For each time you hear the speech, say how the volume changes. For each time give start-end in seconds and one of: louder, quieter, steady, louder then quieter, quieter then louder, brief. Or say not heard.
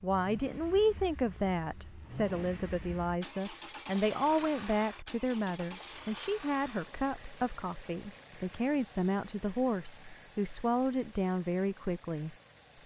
0.0-12.8 steady.